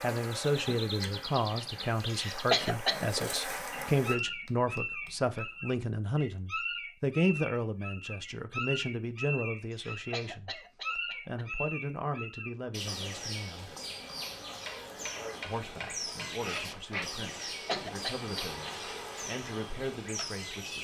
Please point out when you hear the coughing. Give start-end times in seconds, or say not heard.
2.1-3.1, 9.7-11.4, 17.5-18.5.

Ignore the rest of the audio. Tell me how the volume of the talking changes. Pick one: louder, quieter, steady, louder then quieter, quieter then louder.
quieter.